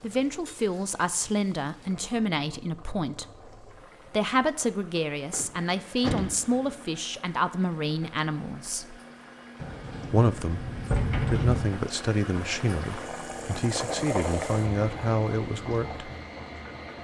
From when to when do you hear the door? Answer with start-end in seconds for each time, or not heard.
5.3-6.8, 9.6-11.7.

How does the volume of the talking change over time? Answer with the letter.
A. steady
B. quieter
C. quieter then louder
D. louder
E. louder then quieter
A.